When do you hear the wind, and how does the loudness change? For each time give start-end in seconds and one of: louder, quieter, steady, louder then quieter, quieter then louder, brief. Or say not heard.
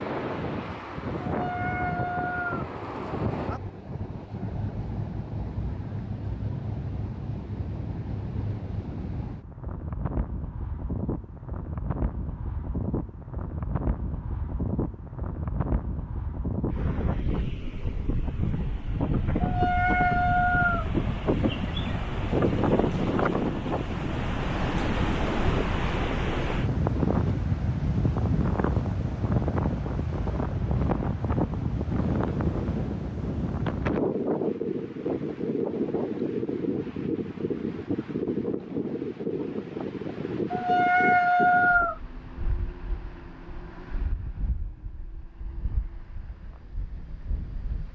0.0-47.9 louder then quieter.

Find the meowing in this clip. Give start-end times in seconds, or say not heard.
1.2-2.7, 19.4-20.9, 40.5-42.0.